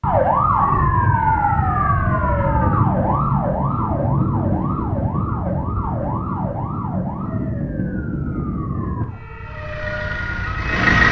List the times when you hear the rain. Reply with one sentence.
You can't hear the rain here.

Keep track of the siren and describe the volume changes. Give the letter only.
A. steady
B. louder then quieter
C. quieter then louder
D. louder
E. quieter
E.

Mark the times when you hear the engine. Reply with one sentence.
The engine can be heard from 9.4 to 11.0 s.